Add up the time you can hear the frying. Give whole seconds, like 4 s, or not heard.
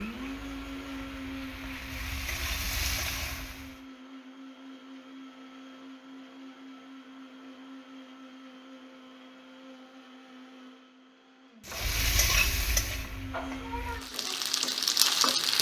8 s.